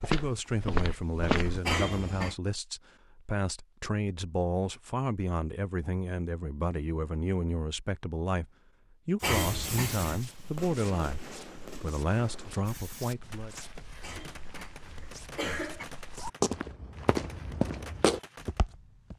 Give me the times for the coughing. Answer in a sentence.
The coughing can be heard from 1.6 to 2.4 s, from 9.2 to 10.2 s and from 14.0 to 15.8 s.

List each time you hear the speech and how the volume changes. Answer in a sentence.
The speech can be heard from 0.0 to 13.6 s, at a steady volume.